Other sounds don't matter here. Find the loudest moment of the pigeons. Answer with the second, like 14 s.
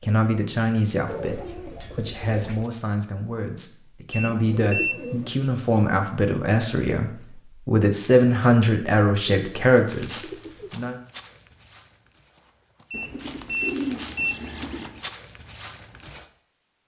14 s.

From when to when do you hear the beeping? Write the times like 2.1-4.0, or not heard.
4.1-5.0, 12.9-14.3.